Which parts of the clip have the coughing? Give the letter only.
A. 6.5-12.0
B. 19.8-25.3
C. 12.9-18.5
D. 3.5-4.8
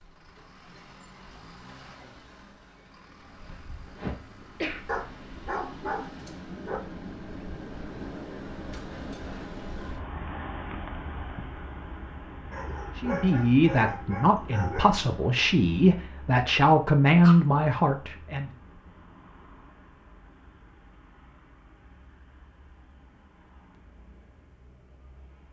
D.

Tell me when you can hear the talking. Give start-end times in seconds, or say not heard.
12.9-18.5.